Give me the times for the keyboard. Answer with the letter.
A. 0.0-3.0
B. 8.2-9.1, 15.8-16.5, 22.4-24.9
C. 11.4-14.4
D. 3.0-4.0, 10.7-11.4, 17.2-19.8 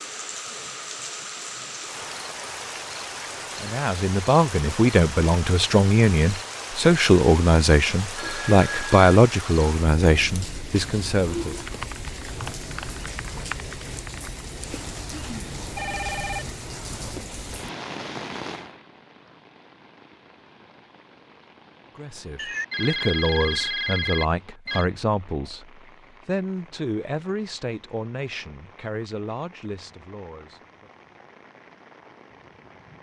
C.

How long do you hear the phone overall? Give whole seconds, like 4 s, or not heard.
4 s.